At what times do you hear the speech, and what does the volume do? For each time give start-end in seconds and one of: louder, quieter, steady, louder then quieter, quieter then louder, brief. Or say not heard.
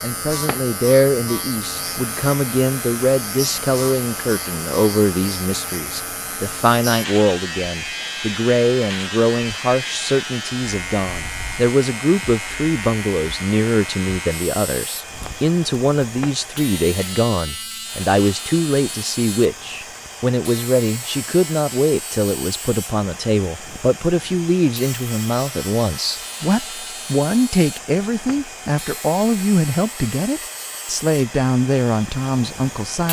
0.0-33.0 steady.